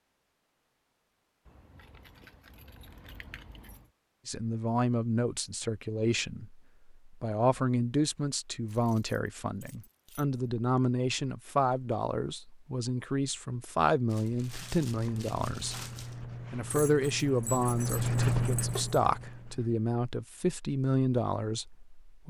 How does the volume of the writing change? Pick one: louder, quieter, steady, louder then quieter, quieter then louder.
louder then quieter.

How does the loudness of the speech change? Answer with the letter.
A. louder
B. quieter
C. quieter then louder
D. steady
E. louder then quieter
D.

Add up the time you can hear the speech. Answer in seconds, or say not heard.
17 s.